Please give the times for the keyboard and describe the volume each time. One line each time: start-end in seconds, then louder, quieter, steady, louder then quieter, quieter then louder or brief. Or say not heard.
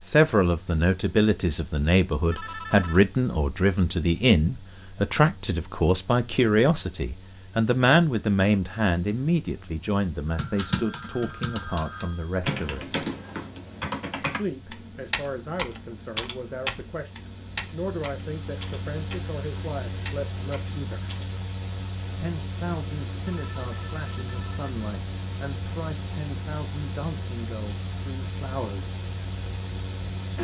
10.3-21.4 quieter.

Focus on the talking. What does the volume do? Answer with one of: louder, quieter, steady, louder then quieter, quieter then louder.
quieter.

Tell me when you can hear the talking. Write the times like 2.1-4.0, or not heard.
0.1-12.9, 14.2-21.1, 22.1-29.0.